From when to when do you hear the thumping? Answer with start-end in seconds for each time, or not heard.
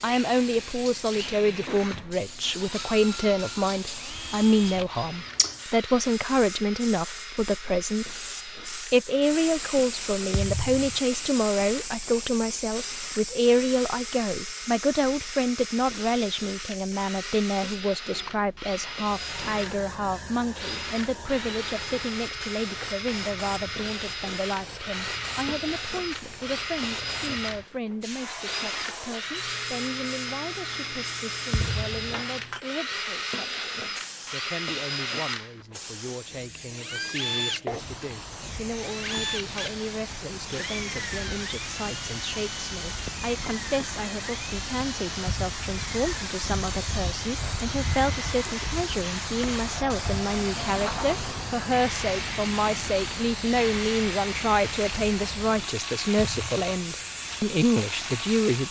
10.3-10.9, 31.5-32.2, 56.1-56.6.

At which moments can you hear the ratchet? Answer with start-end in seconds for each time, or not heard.
not heard.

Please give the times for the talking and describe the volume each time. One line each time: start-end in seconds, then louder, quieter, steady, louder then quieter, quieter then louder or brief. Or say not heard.
0.0-58.6 quieter then louder.